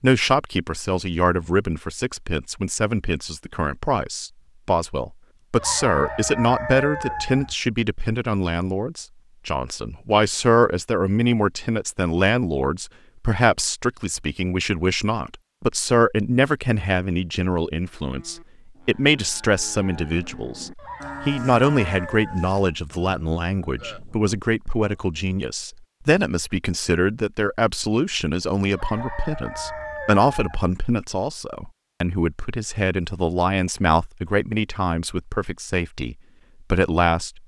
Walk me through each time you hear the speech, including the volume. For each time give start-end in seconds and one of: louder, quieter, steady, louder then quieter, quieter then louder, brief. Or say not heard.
0.0-37.4 steady.